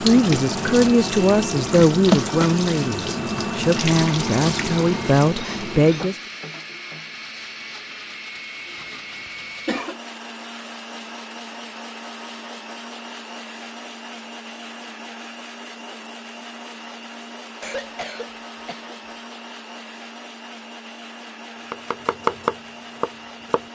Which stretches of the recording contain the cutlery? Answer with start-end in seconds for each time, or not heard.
not heard.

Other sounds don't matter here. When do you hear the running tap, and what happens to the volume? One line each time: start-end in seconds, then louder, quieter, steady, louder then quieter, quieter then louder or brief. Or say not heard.
0.0-9.6 quieter.